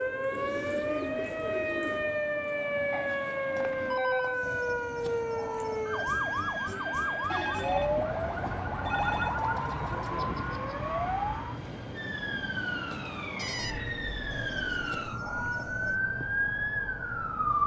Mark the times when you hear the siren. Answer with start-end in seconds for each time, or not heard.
0.0-17.6.